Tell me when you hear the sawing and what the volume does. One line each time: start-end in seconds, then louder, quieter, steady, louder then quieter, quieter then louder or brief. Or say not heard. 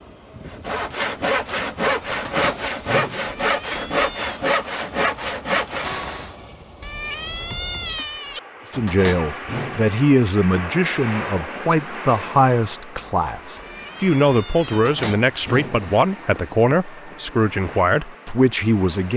0.5-6.3 steady.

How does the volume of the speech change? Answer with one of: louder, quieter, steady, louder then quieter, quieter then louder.
steady.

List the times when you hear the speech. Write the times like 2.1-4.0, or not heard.
8.7-19.1.